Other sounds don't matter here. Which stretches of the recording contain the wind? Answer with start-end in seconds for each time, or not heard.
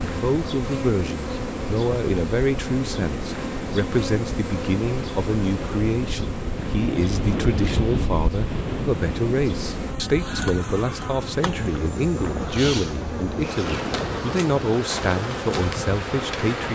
0.0-16.7.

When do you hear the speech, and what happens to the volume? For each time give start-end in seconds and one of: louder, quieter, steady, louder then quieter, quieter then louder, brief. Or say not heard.
0.0-16.7 steady.